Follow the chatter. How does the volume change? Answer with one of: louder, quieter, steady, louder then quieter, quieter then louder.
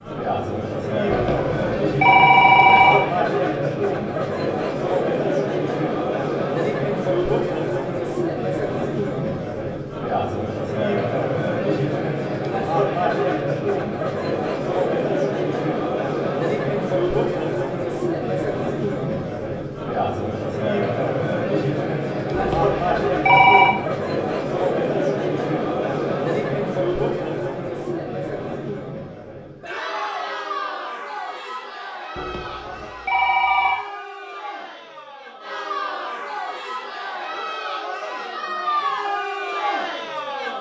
quieter.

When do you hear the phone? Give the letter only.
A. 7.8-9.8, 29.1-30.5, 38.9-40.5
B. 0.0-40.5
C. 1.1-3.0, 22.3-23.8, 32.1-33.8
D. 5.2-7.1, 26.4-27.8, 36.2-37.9
C.